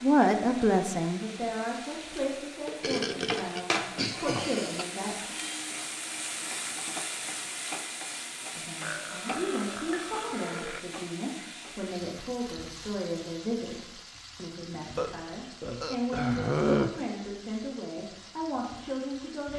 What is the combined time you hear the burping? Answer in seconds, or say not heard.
6 s.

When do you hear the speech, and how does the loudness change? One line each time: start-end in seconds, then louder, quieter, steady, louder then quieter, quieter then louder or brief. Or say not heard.
0.0-5.3 quieter then louder
8.6-19.5 steady.